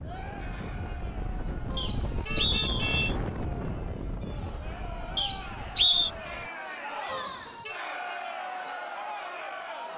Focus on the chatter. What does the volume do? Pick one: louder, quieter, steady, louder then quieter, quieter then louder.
louder.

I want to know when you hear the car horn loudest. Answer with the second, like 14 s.
3 s.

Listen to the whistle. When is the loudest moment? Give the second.
6 s.